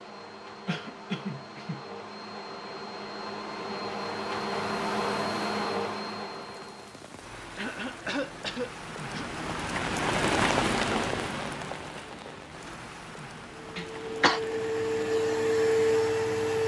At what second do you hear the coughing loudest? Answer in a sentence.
The volume of the coughing peaks at 14 seconds.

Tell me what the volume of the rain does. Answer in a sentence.
The volume of the rain goes up, then down.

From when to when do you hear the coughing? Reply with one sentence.
The coughing can be heard from 0.7 to 1.9 s, from 7.5 to 9.2 s and from 13.8 to 14.4 s.